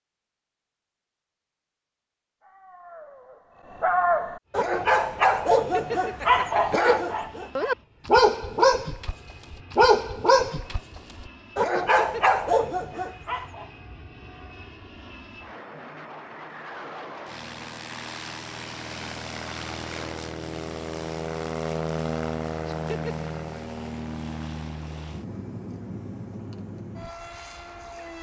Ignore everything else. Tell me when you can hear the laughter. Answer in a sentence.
The laughter can be heard from 5.5 to 6.8 s, from 11.8 to 12.2 s and from 22.6 to 23.3 s.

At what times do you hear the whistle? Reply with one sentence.
You can't hear the whistle here.